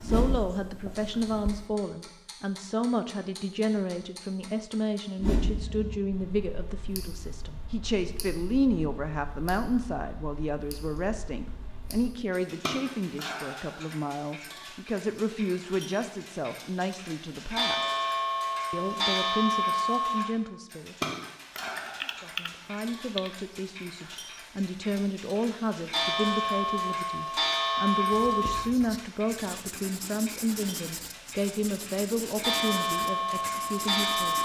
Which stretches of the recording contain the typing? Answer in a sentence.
You can hear the typing from 21.6 to 23.3 s.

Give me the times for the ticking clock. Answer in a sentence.
The ticking clock can be heard from 0.0 to 34.3 s.